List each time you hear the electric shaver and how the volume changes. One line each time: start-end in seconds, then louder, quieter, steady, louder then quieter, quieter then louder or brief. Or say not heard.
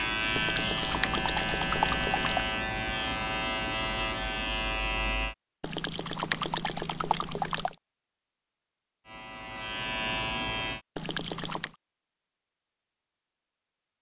0.0-5.3 steady
9.1-10.8 brief.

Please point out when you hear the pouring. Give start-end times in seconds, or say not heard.
0.3-2.5, 5.6-7.8, 10.9-11.8.